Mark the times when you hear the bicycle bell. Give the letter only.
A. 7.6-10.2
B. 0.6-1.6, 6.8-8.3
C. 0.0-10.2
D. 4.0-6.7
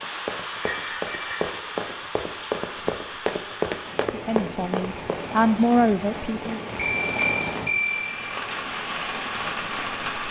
B.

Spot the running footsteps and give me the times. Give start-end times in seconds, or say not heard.
0.0-5.2.